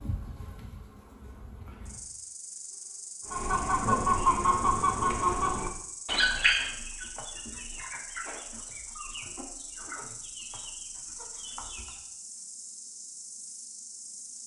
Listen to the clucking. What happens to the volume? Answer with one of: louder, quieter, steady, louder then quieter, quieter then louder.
quieter.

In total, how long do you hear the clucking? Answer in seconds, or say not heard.
9 s.